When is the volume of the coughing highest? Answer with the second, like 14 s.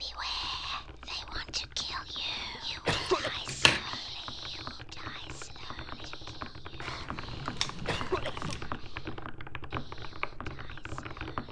3 s.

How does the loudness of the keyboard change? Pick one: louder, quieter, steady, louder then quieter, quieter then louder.
louder.